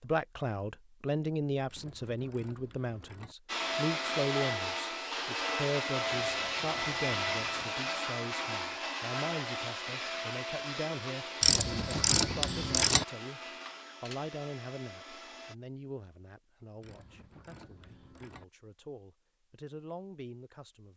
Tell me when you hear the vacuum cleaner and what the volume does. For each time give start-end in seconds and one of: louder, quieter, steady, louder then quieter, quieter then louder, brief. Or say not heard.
3.5-15.6 quieter.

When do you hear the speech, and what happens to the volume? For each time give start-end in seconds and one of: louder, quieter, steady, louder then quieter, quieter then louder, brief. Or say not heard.
0.0-13.4 quieter
14.0-20.9 quieter then louder.